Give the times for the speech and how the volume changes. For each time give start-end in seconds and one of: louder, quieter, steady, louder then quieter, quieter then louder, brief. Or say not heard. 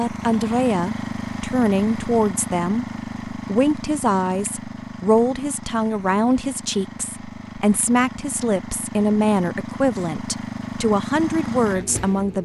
0.0-12.4 steady.